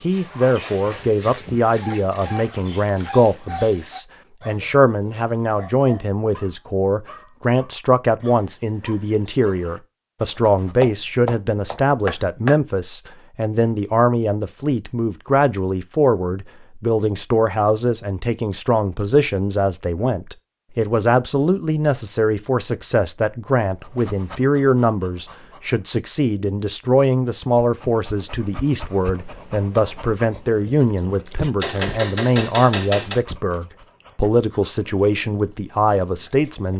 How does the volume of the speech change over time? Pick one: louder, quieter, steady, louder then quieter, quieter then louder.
steady.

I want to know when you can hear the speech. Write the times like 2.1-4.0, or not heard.
0.0-36.7.